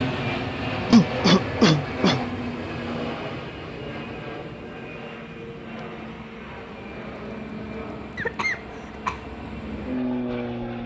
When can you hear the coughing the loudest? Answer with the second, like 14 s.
1 s.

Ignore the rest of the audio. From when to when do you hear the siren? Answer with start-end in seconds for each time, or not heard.
not heard.